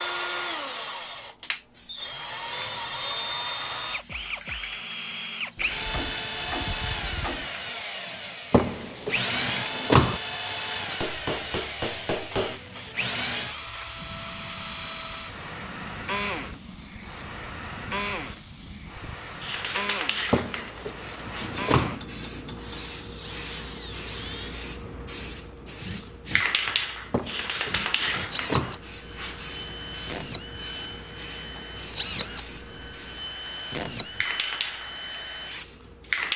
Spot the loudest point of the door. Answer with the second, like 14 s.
10 s.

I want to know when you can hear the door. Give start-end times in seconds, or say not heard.
8.5-10.2, 20.3-21.9, 27.1-28.8.